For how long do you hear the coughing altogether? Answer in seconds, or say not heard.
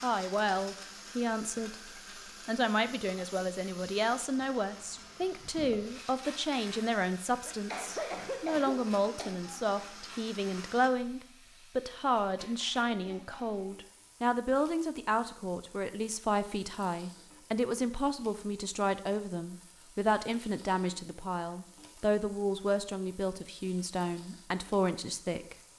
2 s.